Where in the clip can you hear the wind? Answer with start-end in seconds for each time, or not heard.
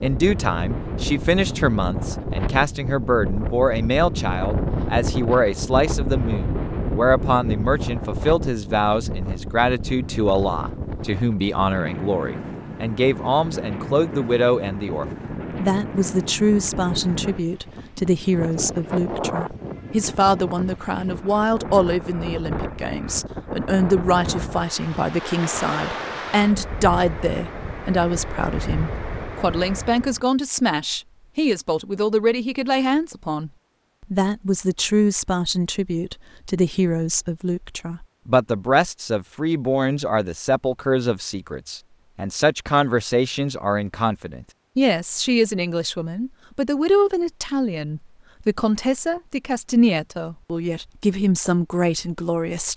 0.0-30.2.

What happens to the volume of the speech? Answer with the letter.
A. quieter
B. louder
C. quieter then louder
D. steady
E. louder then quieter
D.